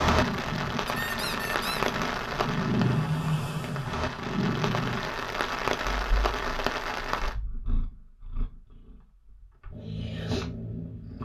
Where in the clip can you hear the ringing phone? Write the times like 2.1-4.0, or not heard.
not heard.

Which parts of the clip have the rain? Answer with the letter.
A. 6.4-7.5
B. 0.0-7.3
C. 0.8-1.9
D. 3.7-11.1
B.